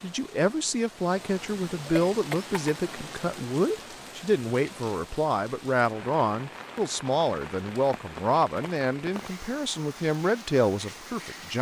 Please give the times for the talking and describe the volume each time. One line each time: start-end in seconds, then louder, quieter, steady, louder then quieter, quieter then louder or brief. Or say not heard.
0.0-11.5 steady.